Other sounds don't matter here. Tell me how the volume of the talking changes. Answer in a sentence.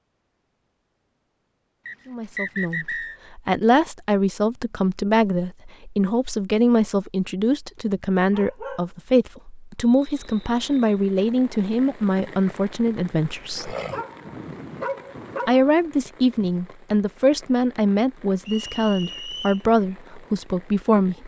The loudness of the talking stays about the same.